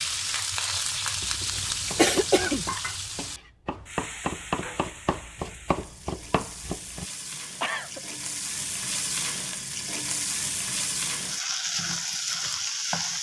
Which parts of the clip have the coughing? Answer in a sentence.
The coughing can be heard from 1.2 to 2.6 s and from 7.3 to 8.0 s.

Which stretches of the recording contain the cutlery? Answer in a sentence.
The cutlery can't be heard in this clip.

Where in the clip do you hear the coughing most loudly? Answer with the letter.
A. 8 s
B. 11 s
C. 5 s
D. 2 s
D.